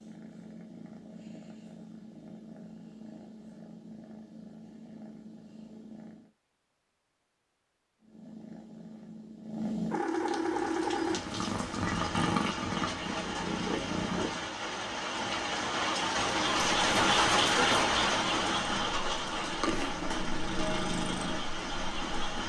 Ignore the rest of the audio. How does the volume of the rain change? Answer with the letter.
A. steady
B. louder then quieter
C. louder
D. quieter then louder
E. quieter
B.